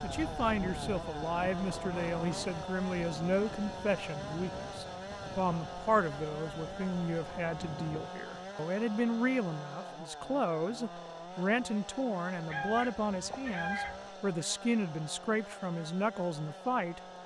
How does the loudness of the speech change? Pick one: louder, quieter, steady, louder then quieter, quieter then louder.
steady.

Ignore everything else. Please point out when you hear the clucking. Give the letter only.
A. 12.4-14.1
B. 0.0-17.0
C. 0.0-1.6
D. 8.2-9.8
A.